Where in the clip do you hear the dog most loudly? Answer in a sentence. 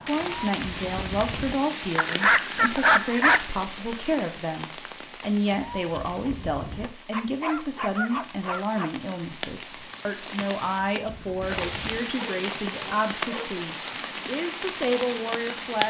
The loudest moment of the dog is at 3 seconds.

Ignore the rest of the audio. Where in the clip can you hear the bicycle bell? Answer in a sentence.
You can't hear the bicycle bell here.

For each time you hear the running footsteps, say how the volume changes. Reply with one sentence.
The running footsteps can't be heard in this clip.